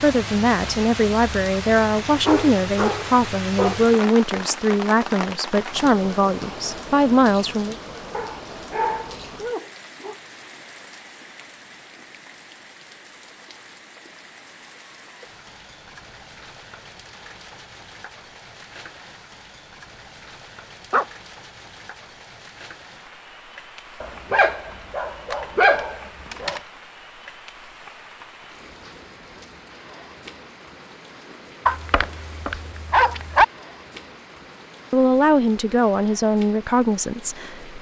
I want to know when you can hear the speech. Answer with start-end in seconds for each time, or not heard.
0.0-7.8, 34.9-37.7.